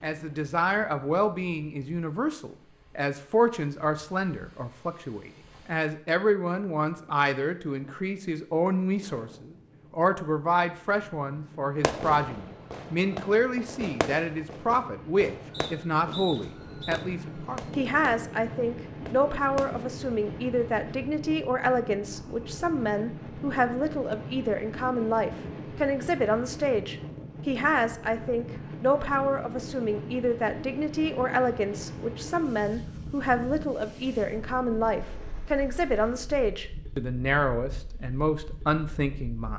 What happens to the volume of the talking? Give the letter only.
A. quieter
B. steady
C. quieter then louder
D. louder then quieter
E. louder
B.